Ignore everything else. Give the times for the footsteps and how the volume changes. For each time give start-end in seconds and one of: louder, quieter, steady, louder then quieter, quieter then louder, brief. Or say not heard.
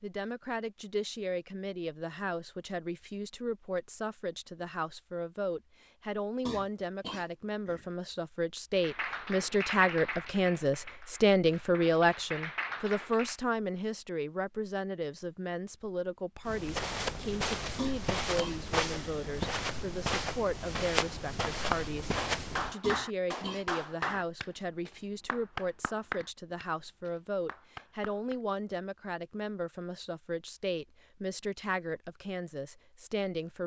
16.4-22.8 steady.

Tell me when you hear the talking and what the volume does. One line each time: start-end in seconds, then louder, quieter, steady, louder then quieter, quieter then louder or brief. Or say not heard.
0.0-22.1 louder then quieter
22.7-33.6 steady.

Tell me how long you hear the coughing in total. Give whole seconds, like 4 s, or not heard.
4 s.